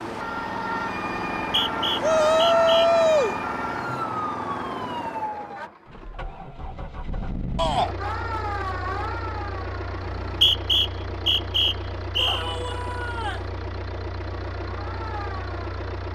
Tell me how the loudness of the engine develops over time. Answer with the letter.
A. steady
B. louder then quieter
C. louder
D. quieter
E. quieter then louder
D.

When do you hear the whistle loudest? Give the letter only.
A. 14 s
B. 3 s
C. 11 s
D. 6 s
C.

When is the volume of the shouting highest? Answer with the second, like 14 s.
3 s.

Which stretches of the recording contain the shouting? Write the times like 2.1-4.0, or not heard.
2.0-3.4, 7.5-8.0, 12.2-13.5.